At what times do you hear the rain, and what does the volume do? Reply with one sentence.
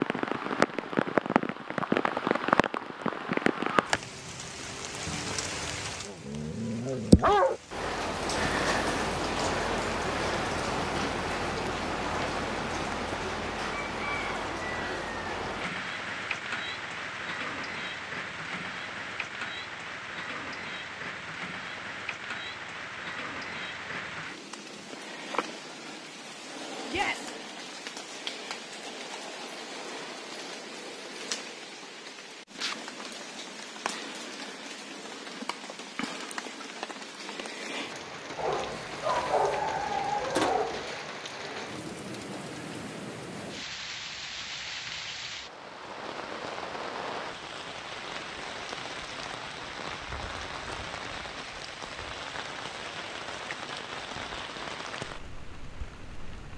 The rain can be heard from 0.0 to 56.5 s, getting quieter.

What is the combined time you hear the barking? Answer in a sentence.
You can hear the barking for 4 seconds altogether.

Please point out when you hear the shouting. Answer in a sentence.
You can hear the shouting from 26.9 to 27.4 s.